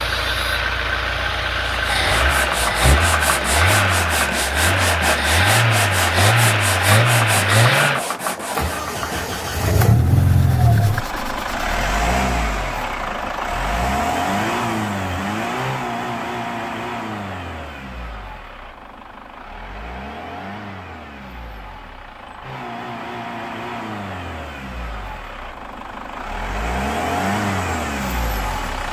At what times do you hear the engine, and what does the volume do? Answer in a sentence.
The engine can be heard from 0.0 to 28.8 s, getting quieter then louder.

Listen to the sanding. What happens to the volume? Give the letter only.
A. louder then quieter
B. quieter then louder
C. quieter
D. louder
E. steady
C.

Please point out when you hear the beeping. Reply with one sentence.
You can't hear the beeping here.